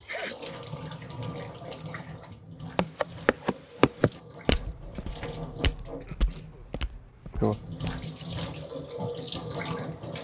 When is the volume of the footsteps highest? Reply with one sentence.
The loudest moment of the footsteps is at 4 seconds.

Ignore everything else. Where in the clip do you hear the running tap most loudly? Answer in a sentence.
The loudest moment of the running tap is at 8 seconds.